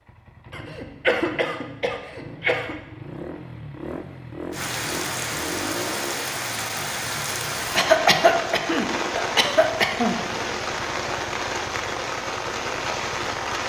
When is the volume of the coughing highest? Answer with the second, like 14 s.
8 s.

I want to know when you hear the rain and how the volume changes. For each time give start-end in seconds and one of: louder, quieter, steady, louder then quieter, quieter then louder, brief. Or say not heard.
4.5-13.6 steady.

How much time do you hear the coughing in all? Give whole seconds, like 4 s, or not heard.
5 s.